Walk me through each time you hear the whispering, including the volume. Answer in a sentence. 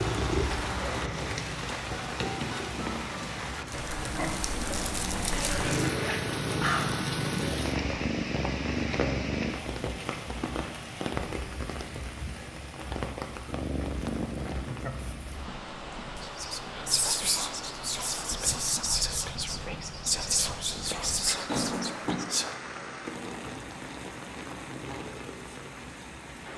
You can hear the whispering from 16.2 to 22.6 s, at a steady volume.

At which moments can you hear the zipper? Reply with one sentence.
You can hear the zipper from 5.3 to 7.0 s and from 21.4 to 22.2 s.